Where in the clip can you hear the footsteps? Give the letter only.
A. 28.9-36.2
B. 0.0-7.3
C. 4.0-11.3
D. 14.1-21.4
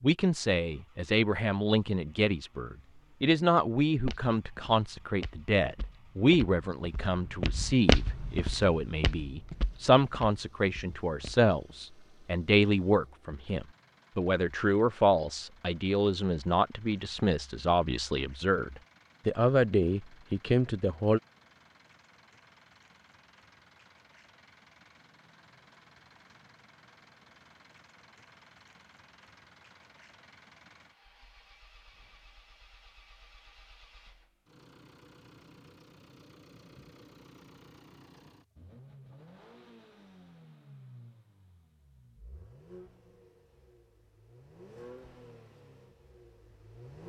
C.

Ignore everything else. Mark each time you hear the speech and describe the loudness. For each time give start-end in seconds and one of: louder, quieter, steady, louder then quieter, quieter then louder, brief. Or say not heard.
0.0-21.2 steady.